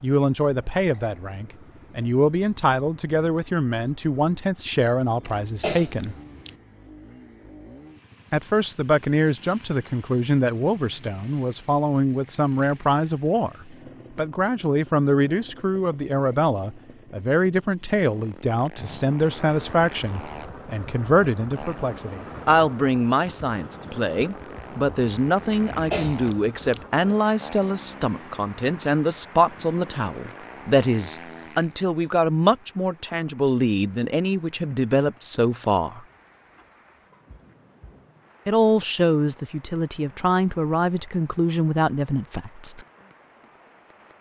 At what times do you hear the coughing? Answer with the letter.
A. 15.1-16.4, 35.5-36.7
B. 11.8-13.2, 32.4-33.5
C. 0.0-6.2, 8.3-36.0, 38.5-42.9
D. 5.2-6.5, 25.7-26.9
D.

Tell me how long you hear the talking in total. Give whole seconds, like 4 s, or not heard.
38 s.